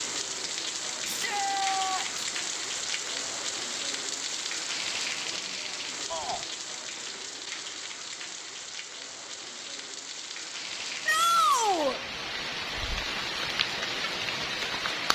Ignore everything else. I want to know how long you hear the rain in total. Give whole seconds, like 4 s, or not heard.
15 s.